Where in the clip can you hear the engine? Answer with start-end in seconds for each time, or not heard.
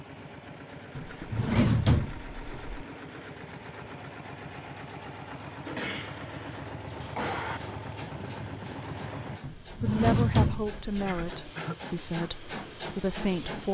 0.0-9.4.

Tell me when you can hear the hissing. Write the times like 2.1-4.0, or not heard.
6.8-13.6.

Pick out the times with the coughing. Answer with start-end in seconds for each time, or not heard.
1.1-1.8, 5.7-7.6, 11.1-11.8.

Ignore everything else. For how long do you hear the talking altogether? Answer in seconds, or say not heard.
4 s.